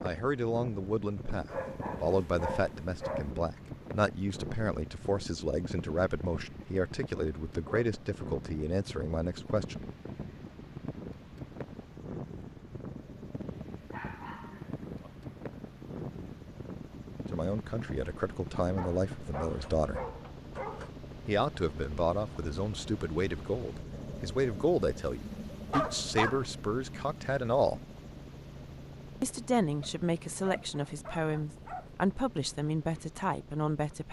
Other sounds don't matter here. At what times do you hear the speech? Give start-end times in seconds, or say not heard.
0.0-9.8, 17.3-20.1, 21.2-27.8, 29.2-34.0.